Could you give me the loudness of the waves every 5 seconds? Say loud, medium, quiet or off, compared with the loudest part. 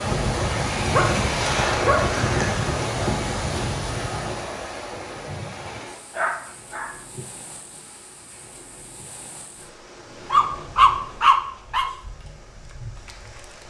loud, quiet, quiet.